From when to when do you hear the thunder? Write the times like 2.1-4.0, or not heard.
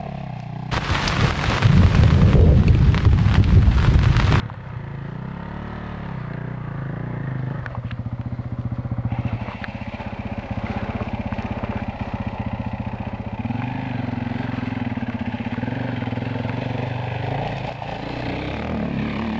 0.7-4.5.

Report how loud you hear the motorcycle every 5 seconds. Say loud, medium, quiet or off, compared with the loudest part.
medium, loud, loud, loud.